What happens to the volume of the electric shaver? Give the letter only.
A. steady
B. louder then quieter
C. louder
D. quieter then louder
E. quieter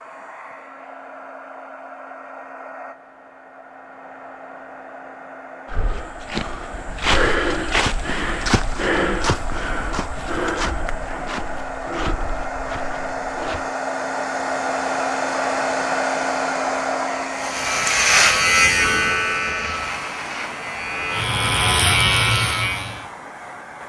D.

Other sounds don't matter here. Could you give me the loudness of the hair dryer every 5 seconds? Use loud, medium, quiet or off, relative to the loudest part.
quiet, medium, loud, loud, medium.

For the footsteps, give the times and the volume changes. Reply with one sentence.
You can hear the footsteps from 5.7 to 13.7 s, getting quieter.